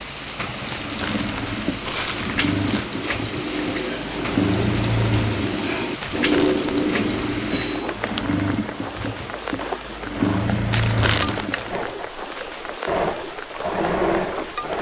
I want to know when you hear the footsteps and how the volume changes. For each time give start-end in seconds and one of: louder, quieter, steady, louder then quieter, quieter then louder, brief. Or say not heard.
not heard.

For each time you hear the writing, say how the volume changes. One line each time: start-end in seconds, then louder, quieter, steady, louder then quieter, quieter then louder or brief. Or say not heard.
1.8-8.0 louder.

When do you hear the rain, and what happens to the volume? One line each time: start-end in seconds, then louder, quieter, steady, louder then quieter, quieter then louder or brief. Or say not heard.
0.0-14.7 steady.